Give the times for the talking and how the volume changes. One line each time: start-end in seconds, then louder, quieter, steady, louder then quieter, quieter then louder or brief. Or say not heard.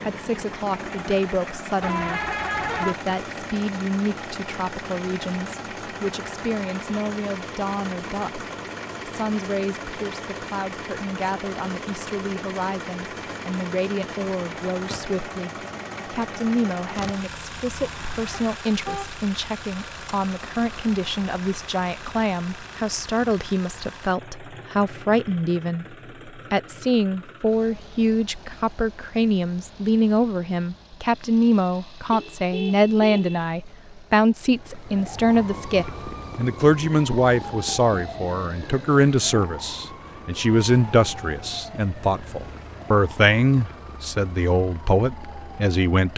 0.0-46.1 louder.